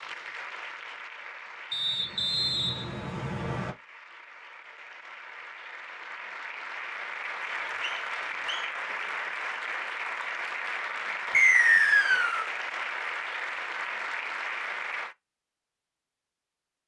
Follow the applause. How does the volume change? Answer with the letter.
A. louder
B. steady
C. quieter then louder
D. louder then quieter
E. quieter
A.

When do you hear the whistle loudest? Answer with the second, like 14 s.
12 s.